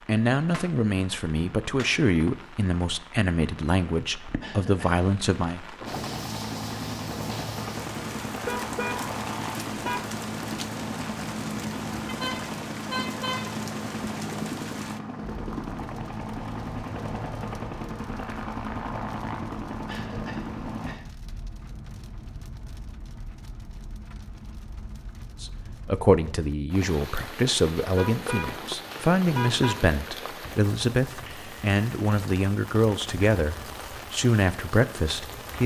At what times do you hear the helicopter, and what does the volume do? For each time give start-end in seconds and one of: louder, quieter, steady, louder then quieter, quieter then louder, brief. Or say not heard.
5.8-20.9 steady.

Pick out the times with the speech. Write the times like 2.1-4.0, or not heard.
0.1-5.6, 25.4-35.6.